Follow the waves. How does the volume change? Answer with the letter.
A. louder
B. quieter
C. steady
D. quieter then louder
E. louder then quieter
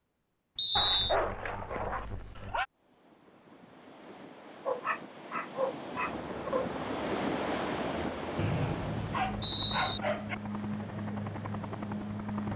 E.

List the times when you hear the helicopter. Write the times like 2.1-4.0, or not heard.
6.0-12.5.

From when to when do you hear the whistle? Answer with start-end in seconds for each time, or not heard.
0.6-1.1, 8.3-10.0.